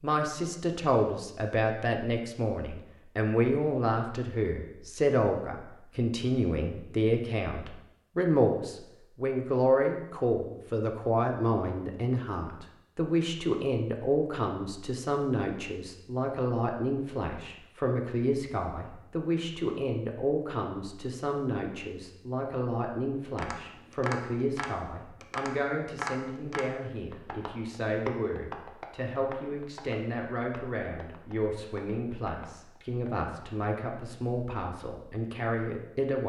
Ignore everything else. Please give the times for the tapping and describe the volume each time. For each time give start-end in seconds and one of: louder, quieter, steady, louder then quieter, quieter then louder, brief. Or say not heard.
23.4-33.1 quieter.